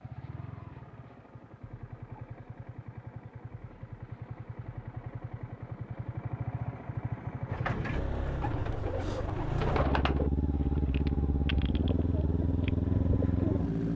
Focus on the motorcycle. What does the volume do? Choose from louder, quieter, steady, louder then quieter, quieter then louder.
louder.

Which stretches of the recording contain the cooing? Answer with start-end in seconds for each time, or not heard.
7.5-13.9.